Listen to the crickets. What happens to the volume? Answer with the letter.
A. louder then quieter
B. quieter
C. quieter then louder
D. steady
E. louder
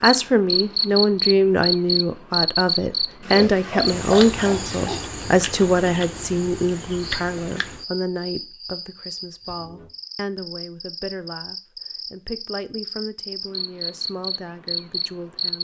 C.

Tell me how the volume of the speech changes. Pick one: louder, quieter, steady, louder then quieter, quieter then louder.
quieter.